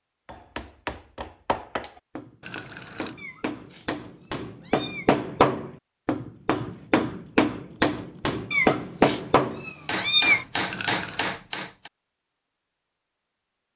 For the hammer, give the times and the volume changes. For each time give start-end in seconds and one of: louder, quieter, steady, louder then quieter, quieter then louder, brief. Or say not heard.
0.2-11.9 louder.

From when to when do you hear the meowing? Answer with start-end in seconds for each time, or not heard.
3.1-5.1, 8.5-10.4.